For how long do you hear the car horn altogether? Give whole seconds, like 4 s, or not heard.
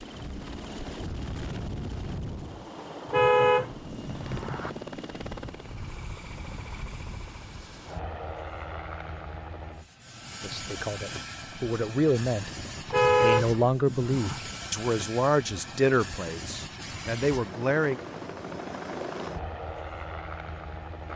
3 s.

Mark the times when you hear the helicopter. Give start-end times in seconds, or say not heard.
0.0-21.1.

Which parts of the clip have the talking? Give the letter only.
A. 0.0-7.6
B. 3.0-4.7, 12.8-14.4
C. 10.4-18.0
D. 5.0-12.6
C.